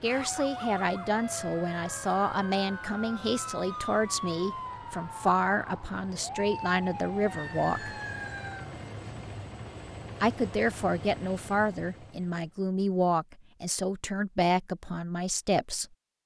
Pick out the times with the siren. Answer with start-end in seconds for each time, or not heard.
0.0-8.8.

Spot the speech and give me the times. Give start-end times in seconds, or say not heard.
0.0-8.0, 10.2-15.8.